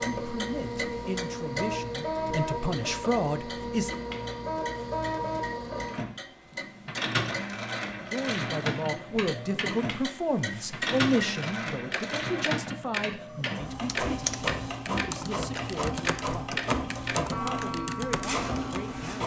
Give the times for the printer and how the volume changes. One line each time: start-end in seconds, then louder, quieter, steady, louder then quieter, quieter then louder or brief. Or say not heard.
0.0-19.2 steady.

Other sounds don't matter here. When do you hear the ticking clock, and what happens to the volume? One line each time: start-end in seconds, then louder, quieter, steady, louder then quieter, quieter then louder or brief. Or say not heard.
0.0-19.2 louder.